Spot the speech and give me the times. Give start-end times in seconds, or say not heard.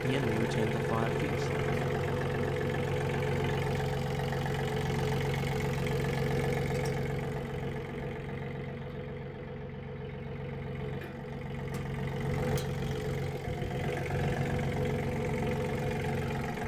0.0-1.6.